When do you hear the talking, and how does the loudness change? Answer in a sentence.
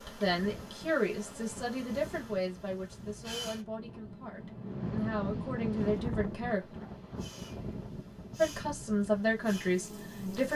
The talking can be heard from 0.1 to 6.7 s, getting quieter then louder; and briefly from 8.3 to 10.5 s.